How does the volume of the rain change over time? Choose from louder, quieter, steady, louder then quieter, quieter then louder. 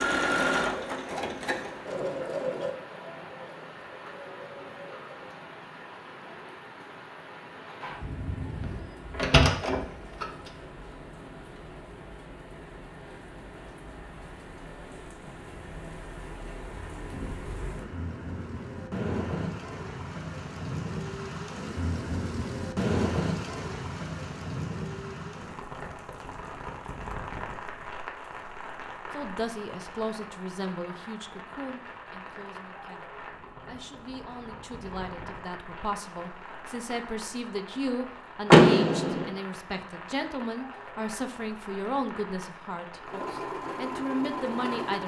louder then quieter.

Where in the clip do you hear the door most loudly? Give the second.
39 s.